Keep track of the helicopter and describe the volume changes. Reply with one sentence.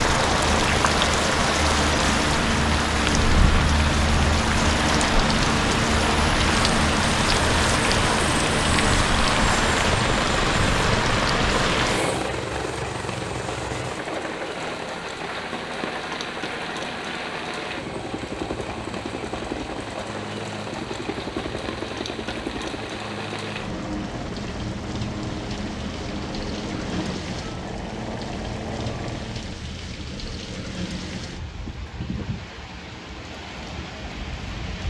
The volume of the helicopter goes down.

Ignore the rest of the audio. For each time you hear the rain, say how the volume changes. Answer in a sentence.
You can hear the rain from 0.0 to 34.8 s, getting quieter.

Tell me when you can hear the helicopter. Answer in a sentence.
You can hear the helicopter from 0.0 to 29.6 s.